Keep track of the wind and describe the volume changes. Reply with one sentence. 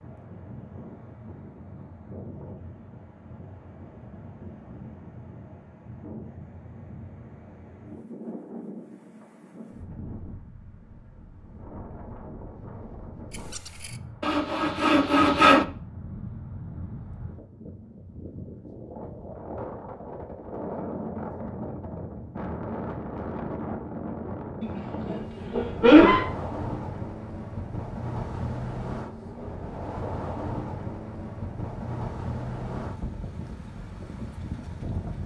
The volume of the wind goes up.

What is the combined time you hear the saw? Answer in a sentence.
You can hear the saw for 2 seconds altogether.